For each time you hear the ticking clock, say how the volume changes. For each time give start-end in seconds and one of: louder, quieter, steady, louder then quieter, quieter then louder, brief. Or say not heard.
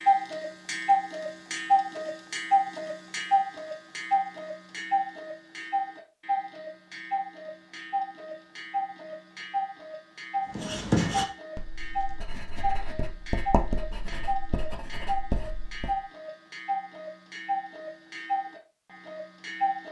0.0-19.8 quieter.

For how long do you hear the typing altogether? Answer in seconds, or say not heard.
not heard.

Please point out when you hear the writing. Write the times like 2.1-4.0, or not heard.
10.5-15.9.